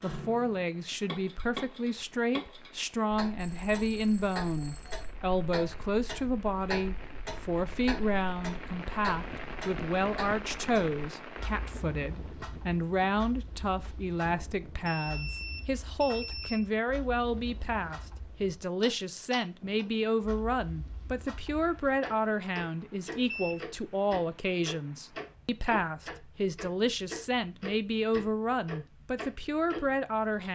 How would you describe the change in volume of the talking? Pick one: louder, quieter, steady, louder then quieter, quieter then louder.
steady.